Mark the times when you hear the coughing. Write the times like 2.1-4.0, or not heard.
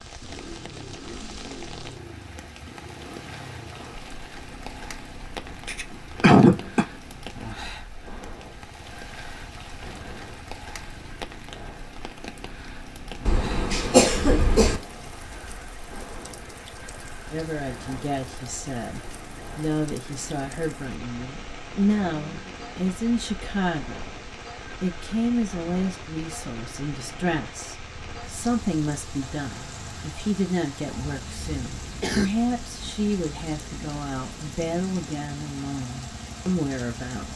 5.7-6.8, 13.2-14.8, 30.9-32.3.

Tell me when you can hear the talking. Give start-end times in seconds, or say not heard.
17.3-37.3.